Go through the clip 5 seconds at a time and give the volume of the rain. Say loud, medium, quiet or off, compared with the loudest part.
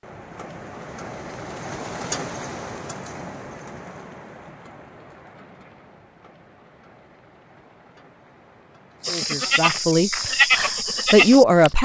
loud, quiet, off.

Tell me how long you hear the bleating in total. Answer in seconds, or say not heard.
3 s.